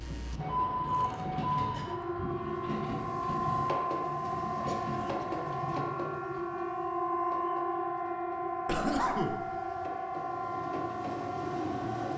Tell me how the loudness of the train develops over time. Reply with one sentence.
The volume of the train goes down, then up.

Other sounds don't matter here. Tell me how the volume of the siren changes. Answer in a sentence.
The loudness of the siren stays about the same.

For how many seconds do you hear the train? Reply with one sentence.
The train can be heard for 12 seconds in total.